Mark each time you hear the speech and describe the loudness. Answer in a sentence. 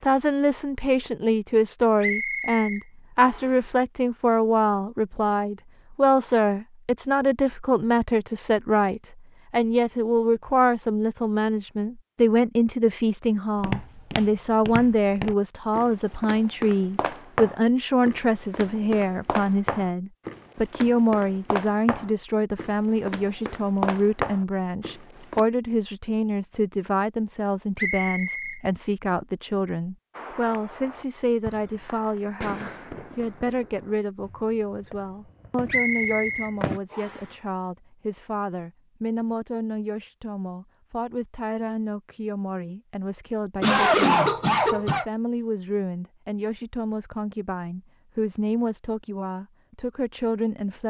The speech can be heard from 0.0 to 50.8 s, getting quieter.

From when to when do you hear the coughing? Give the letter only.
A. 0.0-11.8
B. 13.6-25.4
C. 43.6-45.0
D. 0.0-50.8
C.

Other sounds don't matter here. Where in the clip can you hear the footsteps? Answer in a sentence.
The footsteps can be heard from 13.6 to 25.4 s.